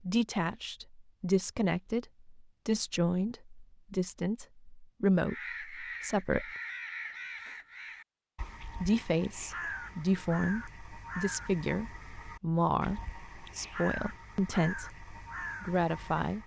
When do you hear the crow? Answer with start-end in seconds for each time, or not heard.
5.2-16.4.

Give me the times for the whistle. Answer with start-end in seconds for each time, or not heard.
not heard.